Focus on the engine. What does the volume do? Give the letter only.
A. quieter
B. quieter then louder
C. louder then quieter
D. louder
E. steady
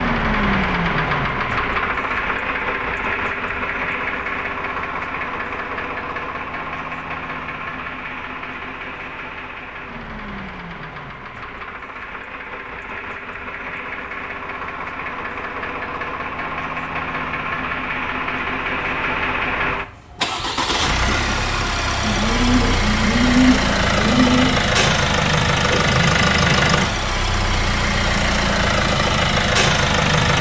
B.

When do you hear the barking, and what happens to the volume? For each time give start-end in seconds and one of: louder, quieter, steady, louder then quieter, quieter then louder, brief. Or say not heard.
not heard.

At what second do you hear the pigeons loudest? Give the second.
23 s.